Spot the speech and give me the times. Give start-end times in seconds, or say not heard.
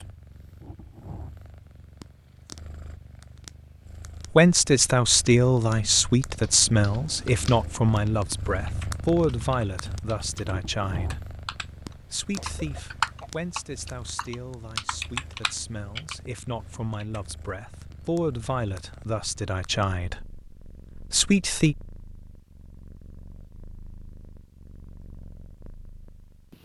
4.3-21.8.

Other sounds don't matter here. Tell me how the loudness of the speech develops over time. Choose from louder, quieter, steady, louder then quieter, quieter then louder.
quieter then louder.